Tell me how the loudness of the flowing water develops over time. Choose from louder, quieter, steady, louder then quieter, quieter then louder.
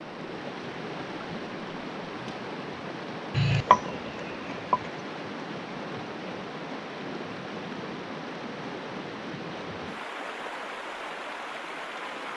steady.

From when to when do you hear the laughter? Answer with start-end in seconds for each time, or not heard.
not heard.